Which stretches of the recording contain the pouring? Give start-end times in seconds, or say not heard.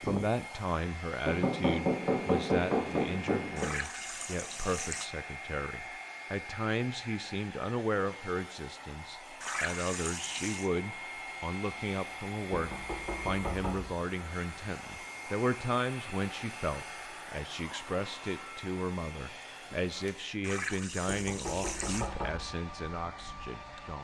3.5-5.1, 9.4-10.7, 20.4-22.1.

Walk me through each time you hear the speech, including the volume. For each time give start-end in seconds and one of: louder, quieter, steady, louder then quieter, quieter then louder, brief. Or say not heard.
0.0-23.9 steady.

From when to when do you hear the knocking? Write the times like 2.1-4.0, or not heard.
1.2-3.6, 12.5-13.9, 21.1-22.4.